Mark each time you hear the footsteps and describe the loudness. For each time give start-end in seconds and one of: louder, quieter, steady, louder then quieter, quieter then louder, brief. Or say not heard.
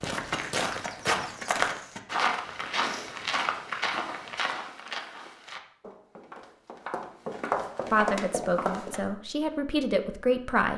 0.0-9.0 quieter then louder.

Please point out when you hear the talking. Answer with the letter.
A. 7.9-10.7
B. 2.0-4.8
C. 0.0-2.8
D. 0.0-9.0
A.